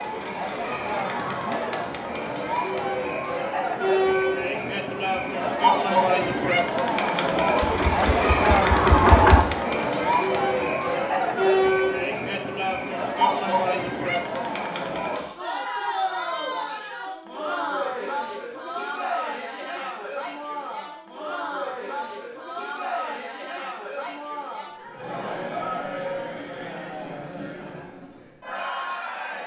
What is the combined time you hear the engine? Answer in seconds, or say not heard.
2 s.